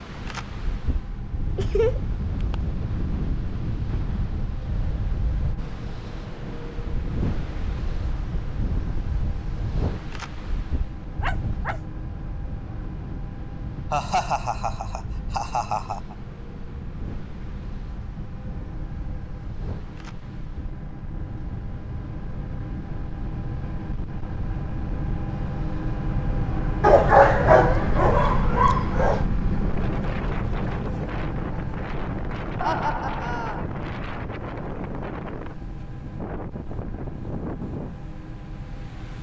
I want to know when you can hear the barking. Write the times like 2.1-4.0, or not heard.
11.2-11.8, 26.8-29.2.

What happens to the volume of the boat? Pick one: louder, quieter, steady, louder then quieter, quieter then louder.
louder then quieter.